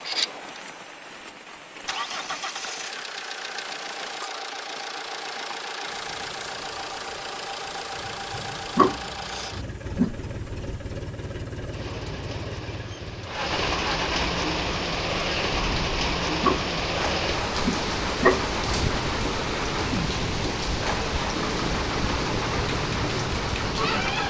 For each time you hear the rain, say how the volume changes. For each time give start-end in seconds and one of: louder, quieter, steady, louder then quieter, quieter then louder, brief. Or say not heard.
0.0-24.2 louder.